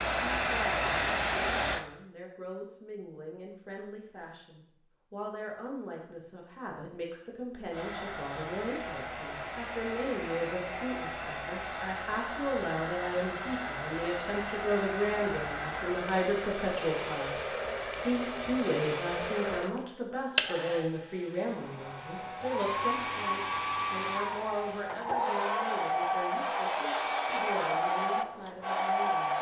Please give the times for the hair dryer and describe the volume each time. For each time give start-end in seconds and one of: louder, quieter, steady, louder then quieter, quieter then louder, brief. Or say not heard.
0.0-1.9 brief
7.7-29.3 louder.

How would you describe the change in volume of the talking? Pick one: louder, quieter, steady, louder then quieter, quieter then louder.
louder then quieter.